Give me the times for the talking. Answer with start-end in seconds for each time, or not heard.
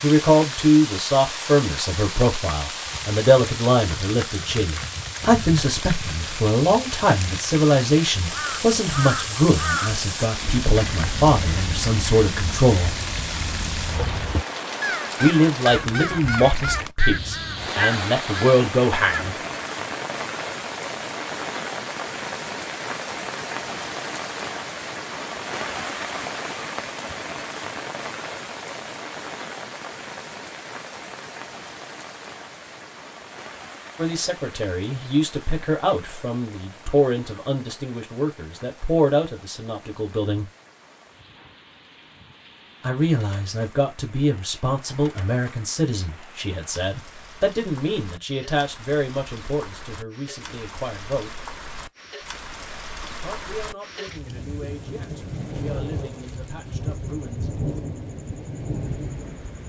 0.0-13.0, 15.2-19.4, 34.0-40.5, 42.8-51.4, 53.2-57.5.